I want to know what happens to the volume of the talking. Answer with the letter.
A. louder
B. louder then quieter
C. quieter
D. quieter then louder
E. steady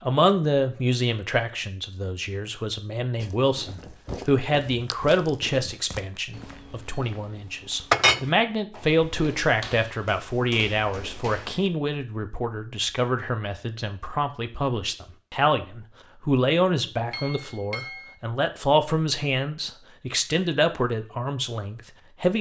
E.